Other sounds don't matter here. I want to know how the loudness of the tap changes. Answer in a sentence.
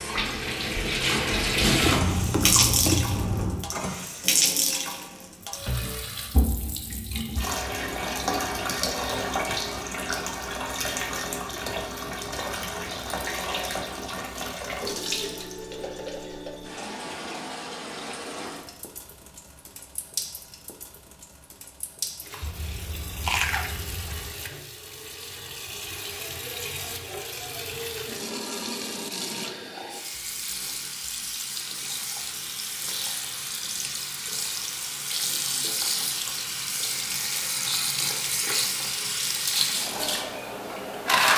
The loudness of the tap goes down, then up.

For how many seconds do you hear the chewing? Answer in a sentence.
The chewing can be heard for 4 seconds in total.